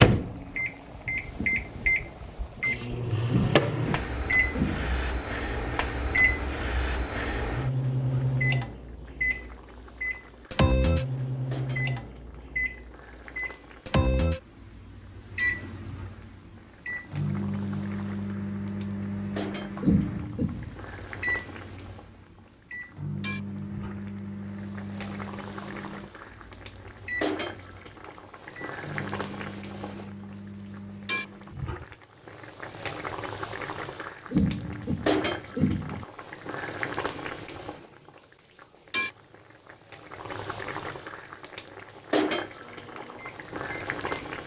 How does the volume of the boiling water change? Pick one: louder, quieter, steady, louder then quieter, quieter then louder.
louder.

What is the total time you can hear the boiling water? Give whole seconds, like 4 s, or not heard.
44 s.